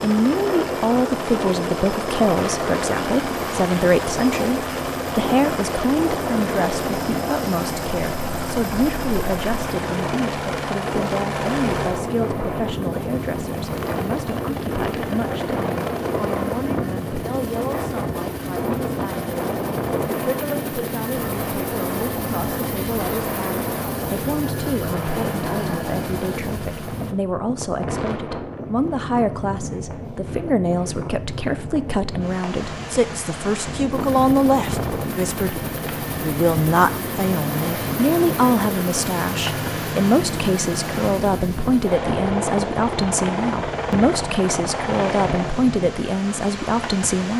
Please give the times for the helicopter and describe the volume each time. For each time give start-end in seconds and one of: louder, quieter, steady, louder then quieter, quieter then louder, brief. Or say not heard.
0.0-27.1 steady
33.9-45.5 steady.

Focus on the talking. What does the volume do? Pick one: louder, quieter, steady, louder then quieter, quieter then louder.
quieter then louder.